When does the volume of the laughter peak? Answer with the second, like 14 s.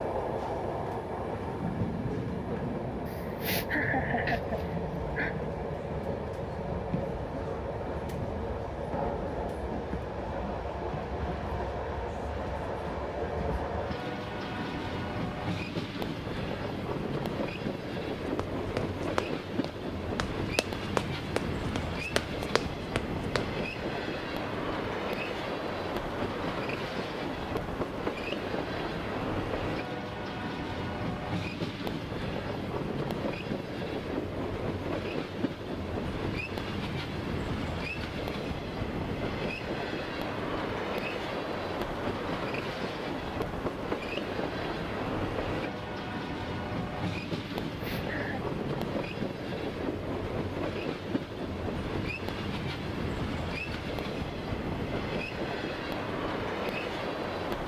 4 s.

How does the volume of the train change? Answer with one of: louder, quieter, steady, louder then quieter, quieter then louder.
steady.